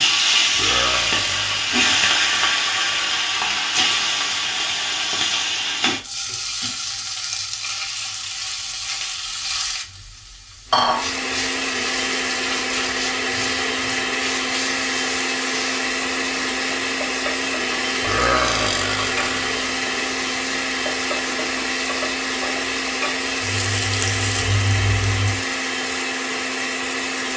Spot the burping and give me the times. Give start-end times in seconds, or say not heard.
0.6-3.1, 18.0-19.6.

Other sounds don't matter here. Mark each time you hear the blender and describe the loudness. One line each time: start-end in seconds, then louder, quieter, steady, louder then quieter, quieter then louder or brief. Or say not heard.
10.7-27.3 steady.